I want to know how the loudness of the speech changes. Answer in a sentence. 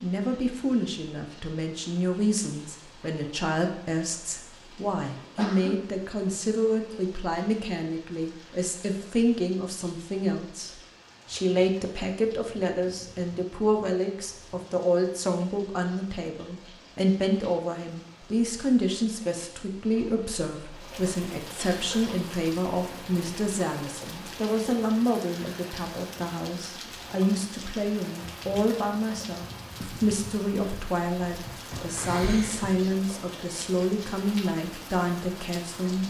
The loudness of the speech stays about the same.